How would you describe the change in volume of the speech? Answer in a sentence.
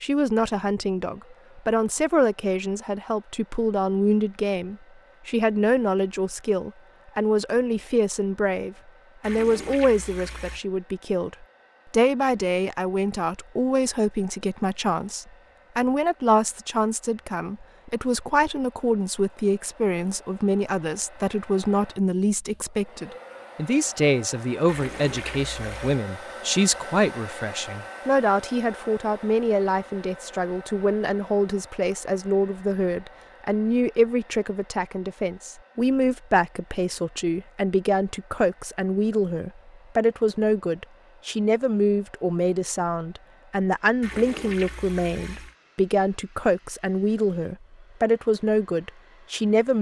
The volume of the speech stays about the same.